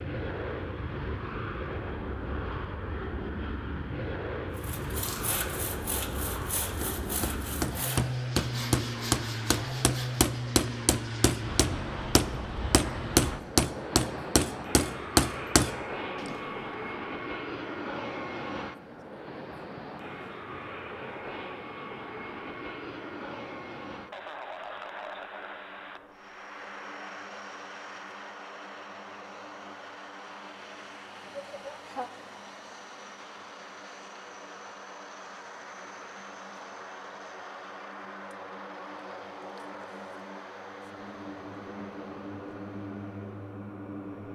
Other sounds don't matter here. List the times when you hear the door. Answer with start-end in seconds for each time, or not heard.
not heard.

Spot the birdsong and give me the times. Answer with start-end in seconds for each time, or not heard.
not heard.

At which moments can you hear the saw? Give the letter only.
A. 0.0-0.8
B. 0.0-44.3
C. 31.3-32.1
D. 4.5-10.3
D.